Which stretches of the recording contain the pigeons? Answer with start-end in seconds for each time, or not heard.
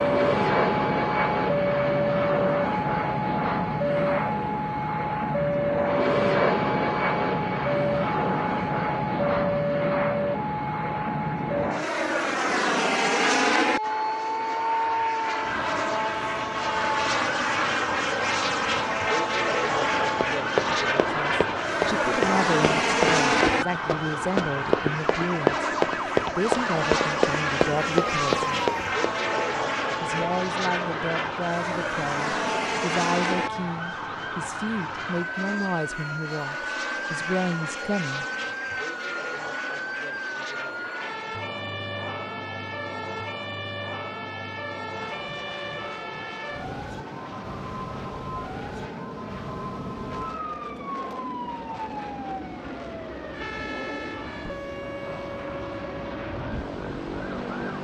not heard.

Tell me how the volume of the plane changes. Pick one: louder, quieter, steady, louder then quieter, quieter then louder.
quieter.